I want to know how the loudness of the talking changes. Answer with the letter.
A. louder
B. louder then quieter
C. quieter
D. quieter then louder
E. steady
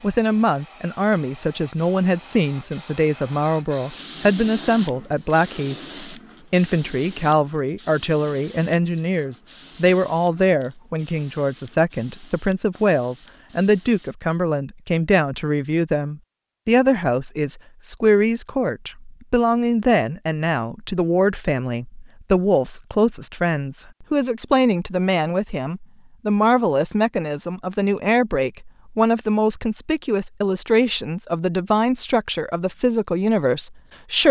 E.